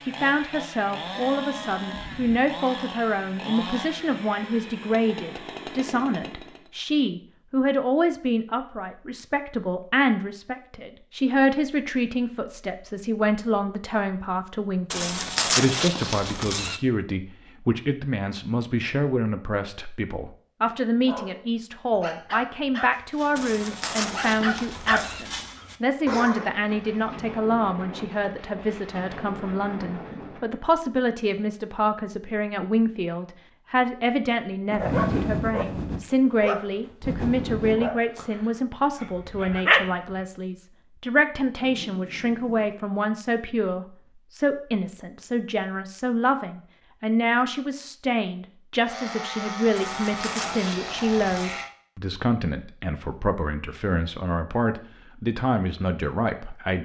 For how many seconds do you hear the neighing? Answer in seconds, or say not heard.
6 s.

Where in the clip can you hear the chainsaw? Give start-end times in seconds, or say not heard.
0.0-6.7, 48.9-51.7.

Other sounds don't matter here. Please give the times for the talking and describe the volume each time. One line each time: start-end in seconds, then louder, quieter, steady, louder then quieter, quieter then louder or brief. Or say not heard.
0.0-56.8 steady.